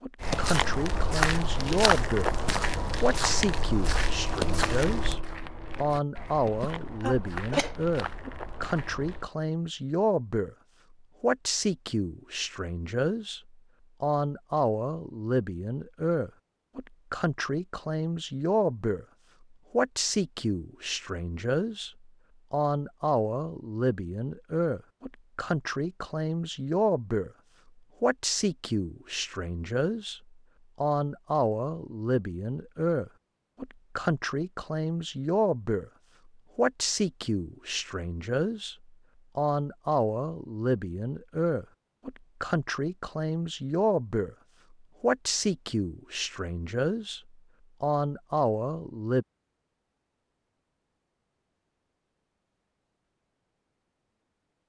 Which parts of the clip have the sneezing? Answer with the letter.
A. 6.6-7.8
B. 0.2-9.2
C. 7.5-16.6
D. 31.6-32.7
A.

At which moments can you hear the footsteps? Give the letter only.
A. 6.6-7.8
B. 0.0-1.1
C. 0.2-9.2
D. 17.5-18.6
C.